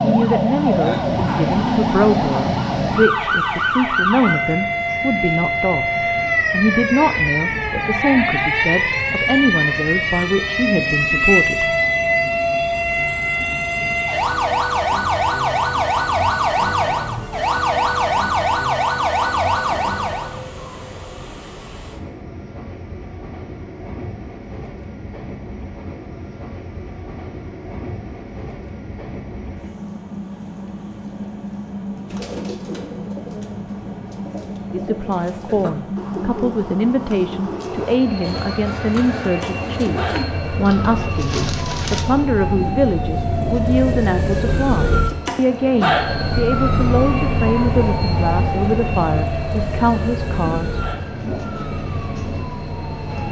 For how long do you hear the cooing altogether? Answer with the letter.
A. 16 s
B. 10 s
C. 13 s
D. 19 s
B.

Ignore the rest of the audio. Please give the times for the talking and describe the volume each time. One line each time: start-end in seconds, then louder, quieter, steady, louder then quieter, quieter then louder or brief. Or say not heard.
0.0-11.8 steady
34.7-50.8 steady.